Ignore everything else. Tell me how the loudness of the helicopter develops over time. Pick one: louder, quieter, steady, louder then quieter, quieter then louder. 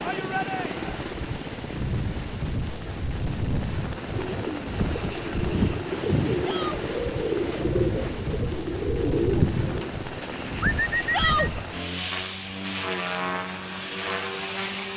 steady.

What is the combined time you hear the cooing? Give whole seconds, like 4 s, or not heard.
7 s.